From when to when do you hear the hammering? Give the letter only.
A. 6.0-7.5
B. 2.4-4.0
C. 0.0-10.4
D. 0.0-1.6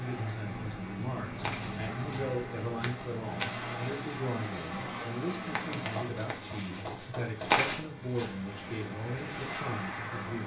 A.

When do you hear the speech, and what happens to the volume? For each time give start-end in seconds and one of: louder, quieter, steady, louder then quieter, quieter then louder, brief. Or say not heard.
0.0-10.4 steady.